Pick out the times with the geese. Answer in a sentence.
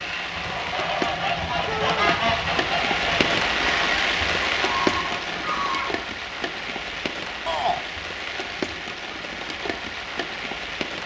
The geese can be heard from 0.0 to 6.1 s.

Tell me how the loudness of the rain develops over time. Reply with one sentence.
The loudness of the rain goes up, then down.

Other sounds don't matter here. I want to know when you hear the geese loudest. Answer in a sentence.
The volume of the geese peaks at 2 seconds.